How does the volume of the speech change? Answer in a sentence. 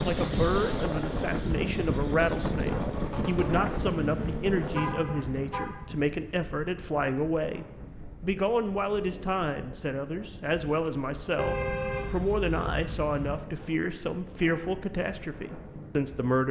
The loudness of the speech stays about the same.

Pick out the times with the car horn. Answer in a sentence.
The car horn can be heard from 4.7 to 5.8 s and from 11.3 to 13.4 s.